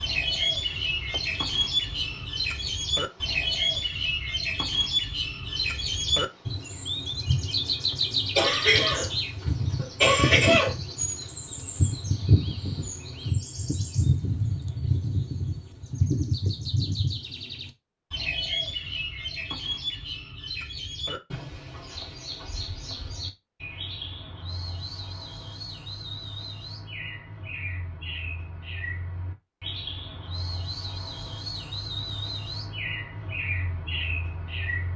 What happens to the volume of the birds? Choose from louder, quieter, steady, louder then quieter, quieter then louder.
quieter.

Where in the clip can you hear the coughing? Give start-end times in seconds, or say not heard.
8.3-10.8.